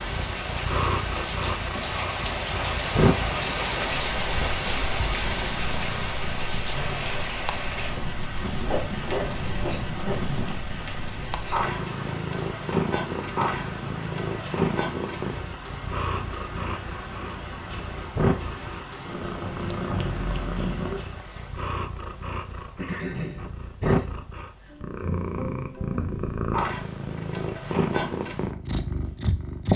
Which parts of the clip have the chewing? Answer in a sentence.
The chewing can be heard from 8.6 to 10.6 s.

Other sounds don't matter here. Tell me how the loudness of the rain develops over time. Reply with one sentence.
The loudness of the rain goes down.